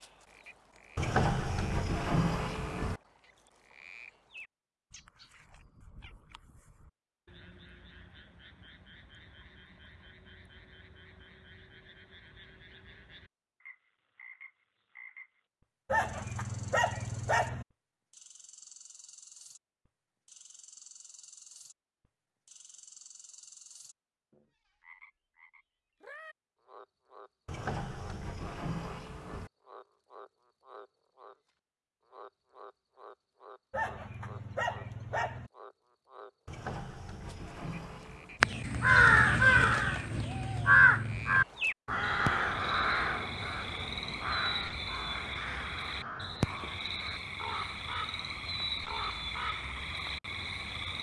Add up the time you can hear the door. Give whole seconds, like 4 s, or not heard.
6 s.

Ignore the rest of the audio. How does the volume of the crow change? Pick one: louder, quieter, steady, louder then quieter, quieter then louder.
quieter.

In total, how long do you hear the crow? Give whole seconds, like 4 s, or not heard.
12 s.